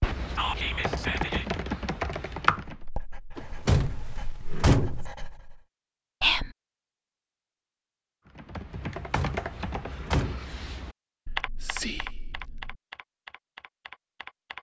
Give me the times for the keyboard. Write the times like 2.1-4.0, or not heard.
0.0-2.8, 8.3-14.5.